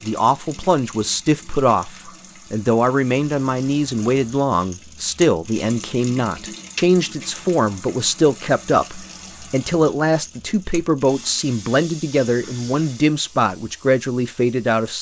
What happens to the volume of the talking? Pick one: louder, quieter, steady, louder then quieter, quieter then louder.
steady.